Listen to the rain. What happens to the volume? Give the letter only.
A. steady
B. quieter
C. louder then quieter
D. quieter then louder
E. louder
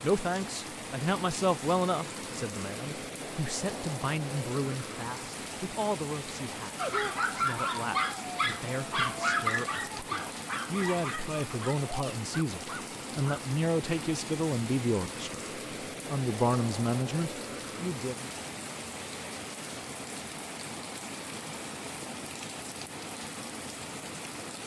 A.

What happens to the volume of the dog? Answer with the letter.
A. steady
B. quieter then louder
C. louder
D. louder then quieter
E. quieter
E.